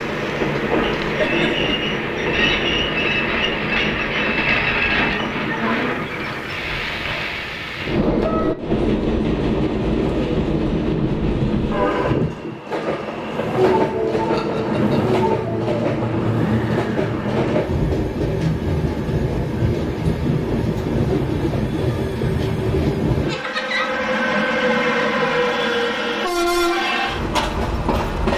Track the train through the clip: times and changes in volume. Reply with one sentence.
You can hear the train from 0.0 to 28.3 s, at a steady volume.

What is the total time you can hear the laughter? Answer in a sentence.
The laughter can be heard for 2 seconds in total.